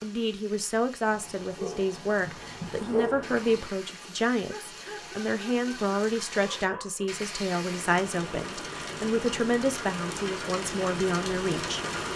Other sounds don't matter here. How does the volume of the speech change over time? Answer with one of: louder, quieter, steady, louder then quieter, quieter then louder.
steady.